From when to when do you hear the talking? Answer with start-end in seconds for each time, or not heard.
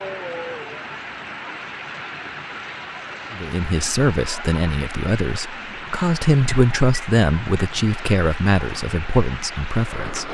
3.3-10.2.